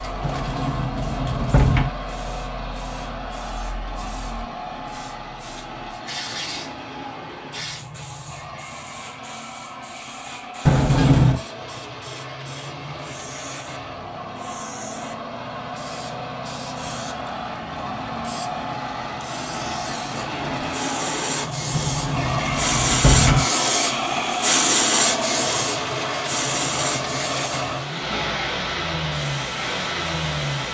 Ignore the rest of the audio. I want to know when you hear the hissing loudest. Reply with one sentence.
The loudest moment of the hissing is at 25 seconds.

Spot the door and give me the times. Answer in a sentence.
You can hear the door from 0.2 to 1.9 s, from 10.7 to 11.4 s and from 21.7 to 23.4 s.